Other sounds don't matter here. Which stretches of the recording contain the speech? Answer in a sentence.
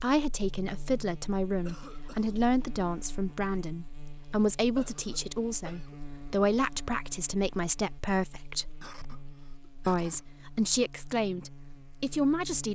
The speech can be heard from 0.0 to 8.7 s and from 9.8 to 12.6 s.